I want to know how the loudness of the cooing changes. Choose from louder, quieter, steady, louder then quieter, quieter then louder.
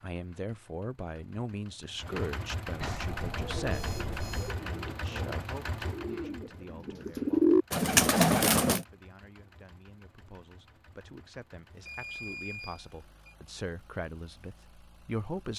louder.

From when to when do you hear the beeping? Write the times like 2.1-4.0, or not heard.
2.8-4.6, 11.8-13.3.